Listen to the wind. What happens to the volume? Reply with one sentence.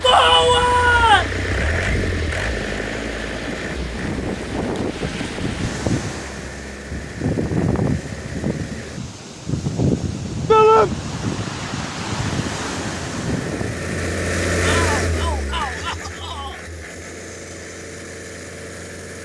The volume of the wind goes up.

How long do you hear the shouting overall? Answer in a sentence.
You can hear the shouting for 4 seconds altogether.